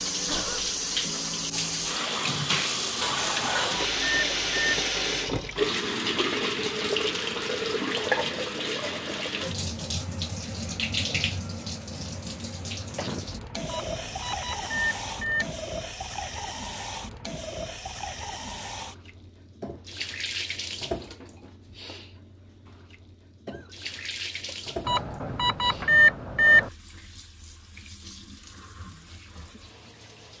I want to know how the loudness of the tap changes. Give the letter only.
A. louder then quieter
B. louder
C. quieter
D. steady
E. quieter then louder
C.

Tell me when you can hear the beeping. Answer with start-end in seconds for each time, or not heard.
3.0-4.8, 13.7-15.6, 24.9-26.7.